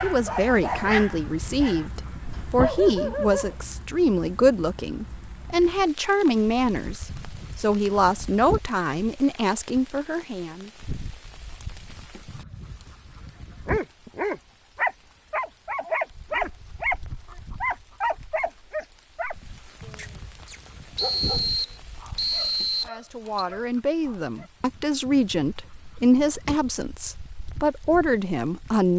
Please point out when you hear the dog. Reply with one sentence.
You can hear the dog from 0.0 to 3.5 s and from 13.7 to 24.5 s.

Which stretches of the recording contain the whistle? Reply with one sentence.
The whistle can be heard from 20.9 to 23.4 s.